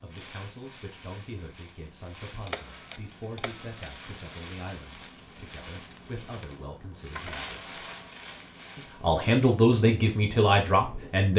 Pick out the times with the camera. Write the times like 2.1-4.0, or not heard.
2.5-3.9, 7.2-8.2.